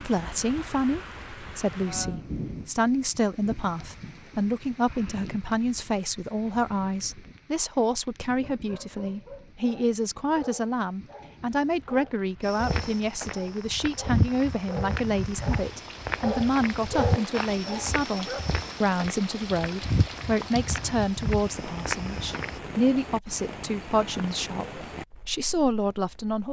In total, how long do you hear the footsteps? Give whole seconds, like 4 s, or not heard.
10 s.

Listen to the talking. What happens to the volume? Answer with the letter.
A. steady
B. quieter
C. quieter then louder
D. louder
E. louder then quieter
A.